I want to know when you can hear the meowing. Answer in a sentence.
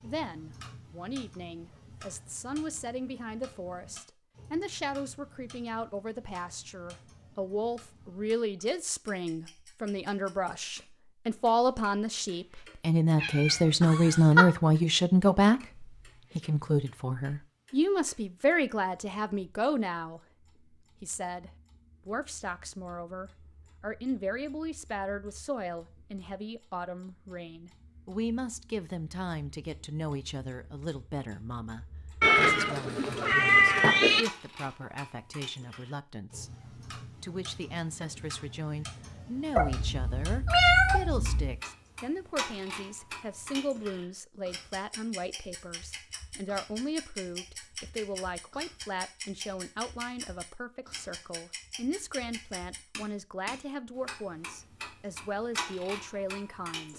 The meowing can be heard from 13.2 to 14.4 s, from 32.2 to 34.2 s and from 39.5 to 41.6 s.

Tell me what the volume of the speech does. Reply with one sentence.
The volume of the speech goes up, then down.